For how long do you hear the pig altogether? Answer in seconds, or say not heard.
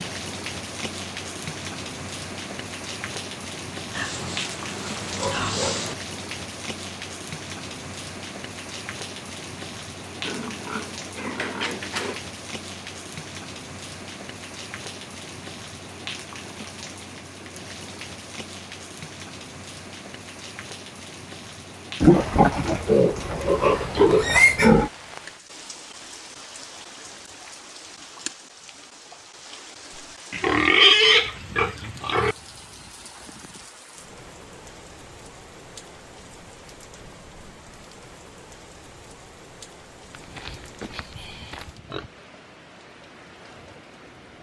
11 s.